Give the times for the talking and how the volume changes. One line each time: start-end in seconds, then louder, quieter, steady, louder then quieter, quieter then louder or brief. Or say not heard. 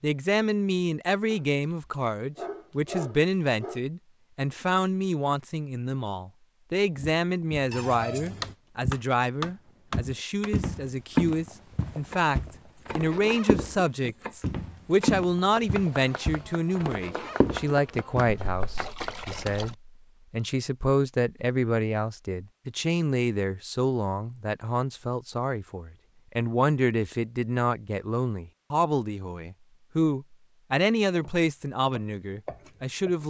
0.0-33.2 steady.